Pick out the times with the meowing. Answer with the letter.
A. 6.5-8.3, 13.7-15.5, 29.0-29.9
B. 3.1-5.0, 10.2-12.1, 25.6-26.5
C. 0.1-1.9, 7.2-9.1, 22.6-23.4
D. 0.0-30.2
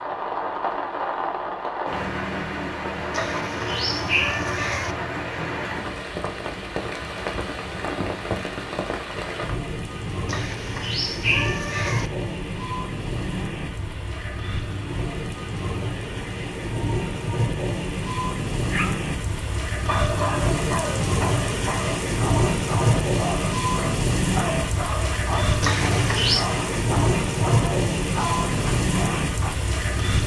B.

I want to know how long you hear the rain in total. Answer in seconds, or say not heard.
30 s.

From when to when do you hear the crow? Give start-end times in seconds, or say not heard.
not heard.